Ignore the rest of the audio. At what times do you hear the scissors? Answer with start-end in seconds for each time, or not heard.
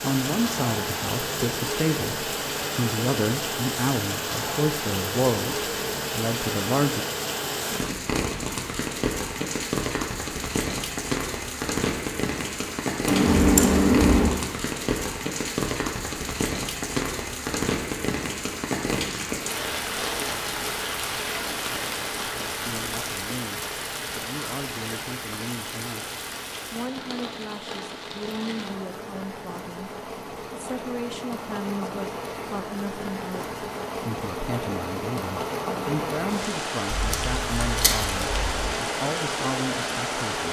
13.1-14.3, 36.9-38.7.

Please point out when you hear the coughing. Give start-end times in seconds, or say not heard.
not heard.